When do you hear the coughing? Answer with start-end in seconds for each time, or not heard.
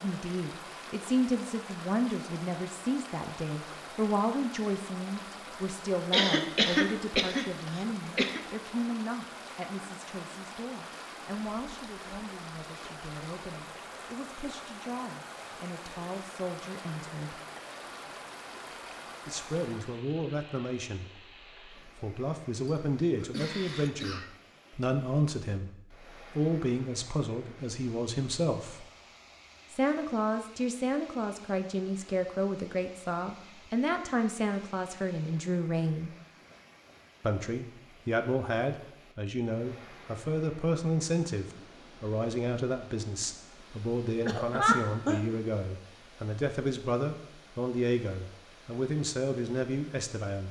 6.1-8.4, 22.6-24.3, 44.2-45.2.